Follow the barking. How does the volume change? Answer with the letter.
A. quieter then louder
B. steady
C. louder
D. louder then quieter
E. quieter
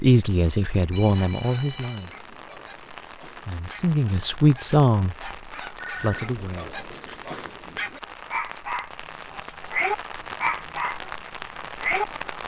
C.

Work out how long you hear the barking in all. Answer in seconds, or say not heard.
11 s.